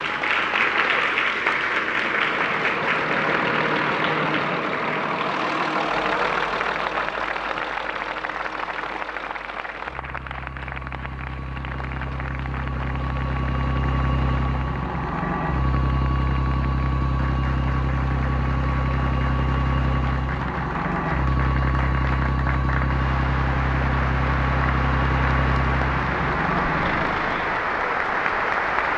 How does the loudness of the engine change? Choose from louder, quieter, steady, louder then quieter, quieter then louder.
quieter then louder.